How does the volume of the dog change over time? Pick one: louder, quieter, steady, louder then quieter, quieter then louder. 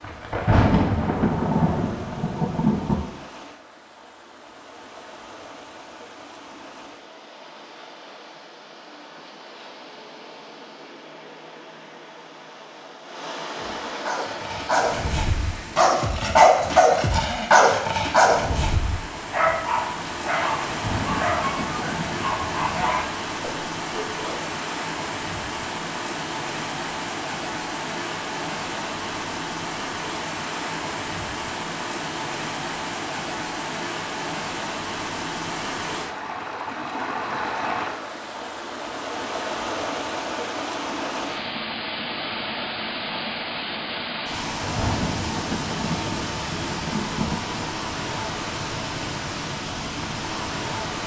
louder then quieter.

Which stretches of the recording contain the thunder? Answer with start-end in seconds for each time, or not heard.
0.0-3.0, 20.6-22.9, 44.5-47.6.